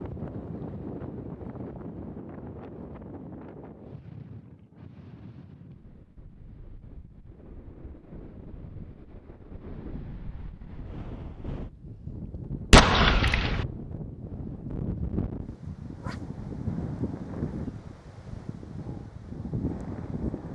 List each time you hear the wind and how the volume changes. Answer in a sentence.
The wind can be heard from 0.0 to 20.5 s, getting quieter then louder.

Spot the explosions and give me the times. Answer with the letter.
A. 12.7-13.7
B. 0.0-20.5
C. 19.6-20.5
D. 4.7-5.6
A.